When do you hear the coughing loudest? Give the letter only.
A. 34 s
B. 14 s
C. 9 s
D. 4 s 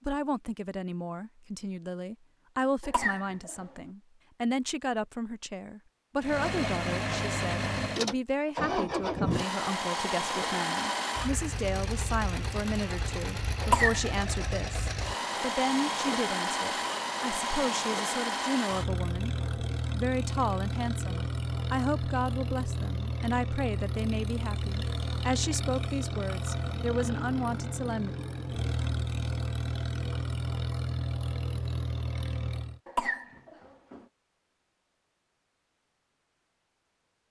B.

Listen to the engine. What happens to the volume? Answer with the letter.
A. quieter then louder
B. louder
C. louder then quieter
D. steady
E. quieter
D.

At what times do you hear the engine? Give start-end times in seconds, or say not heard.
6.2-32.8.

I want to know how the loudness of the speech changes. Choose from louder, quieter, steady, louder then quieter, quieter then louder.
steady.